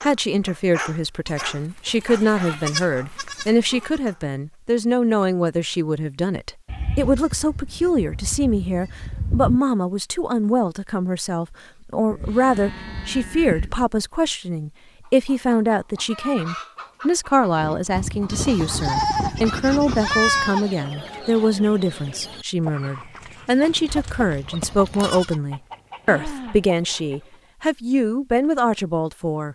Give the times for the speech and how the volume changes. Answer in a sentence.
The speech can be heard from 0.0 to 29.5 s, at a steady volume.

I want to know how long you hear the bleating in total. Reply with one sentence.
The bleating can be heard for 12 seconds in total.